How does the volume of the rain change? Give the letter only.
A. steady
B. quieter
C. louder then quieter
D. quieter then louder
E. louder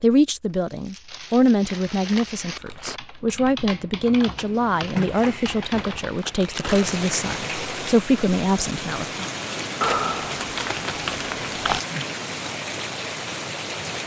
E.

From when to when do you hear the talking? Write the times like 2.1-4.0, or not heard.
0.0-9.2.